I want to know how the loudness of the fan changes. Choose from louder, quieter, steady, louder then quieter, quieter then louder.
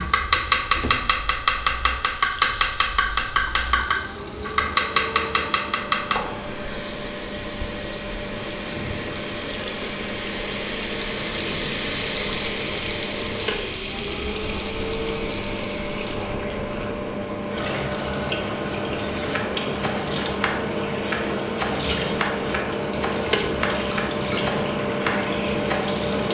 louder.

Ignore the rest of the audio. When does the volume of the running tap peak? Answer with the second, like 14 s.
12 s.